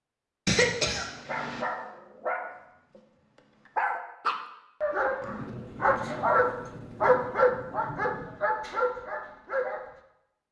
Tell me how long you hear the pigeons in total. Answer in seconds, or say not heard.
not heard.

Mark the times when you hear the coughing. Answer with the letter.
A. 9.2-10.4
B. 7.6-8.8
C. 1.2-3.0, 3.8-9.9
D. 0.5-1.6
D.